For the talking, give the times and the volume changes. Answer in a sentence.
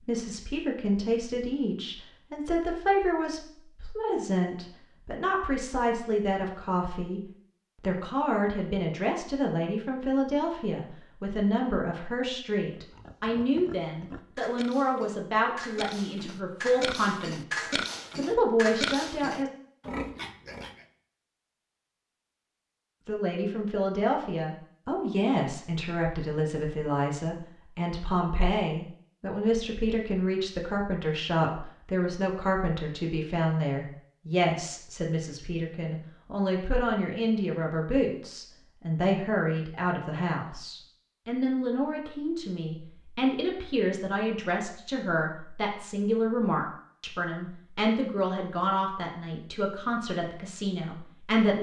The talking can be heard from 0.1 to 19.5 s, at a steady volume; and from 23.1 to 51.5 s, at a steady volume.